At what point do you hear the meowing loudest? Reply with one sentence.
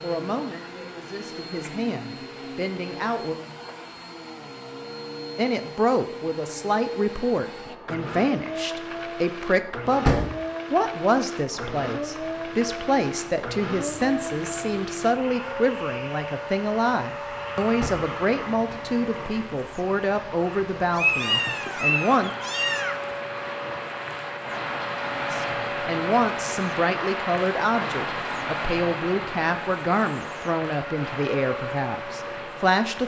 The volume of the meowing peaks at 21 seconds.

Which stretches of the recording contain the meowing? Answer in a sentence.
The meowing can be heard from 20.9 to 22.9 s.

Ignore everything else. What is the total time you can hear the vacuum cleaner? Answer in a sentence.
The vacuum cleaner can be heard for 33 seconds in total.